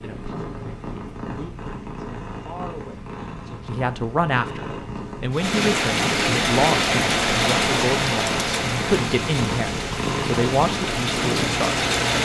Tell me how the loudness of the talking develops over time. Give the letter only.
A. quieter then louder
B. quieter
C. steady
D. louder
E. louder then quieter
D.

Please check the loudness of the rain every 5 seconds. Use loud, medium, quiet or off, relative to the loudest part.
off, loud, loud.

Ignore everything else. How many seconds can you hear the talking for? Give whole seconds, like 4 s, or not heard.
12 s.